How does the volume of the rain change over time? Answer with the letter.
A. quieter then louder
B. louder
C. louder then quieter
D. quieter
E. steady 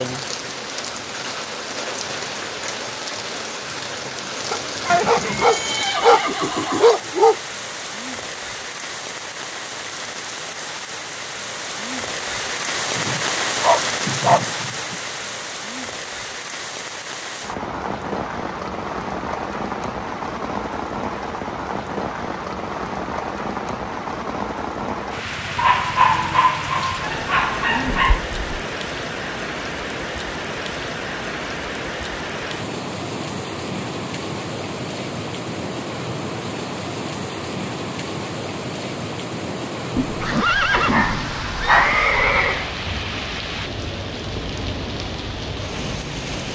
E.